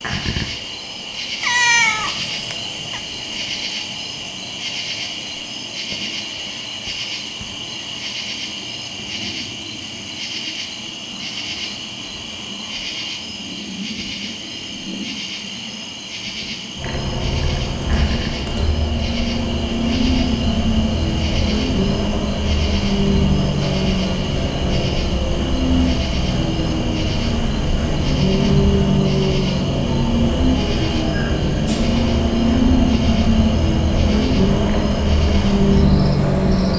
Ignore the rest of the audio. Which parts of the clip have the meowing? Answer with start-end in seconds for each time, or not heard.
1.4-3.0.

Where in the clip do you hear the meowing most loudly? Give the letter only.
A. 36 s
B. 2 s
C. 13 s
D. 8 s
B.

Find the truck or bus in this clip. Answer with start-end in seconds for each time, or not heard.
16.8-36.7.